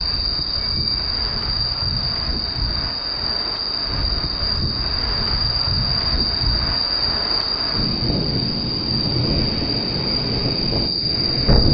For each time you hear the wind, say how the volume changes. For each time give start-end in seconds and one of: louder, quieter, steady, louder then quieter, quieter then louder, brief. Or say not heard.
0.0-11.6 louder.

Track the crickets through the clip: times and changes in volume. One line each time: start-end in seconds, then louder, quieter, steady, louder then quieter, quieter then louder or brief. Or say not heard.
0.0-11.6 steady.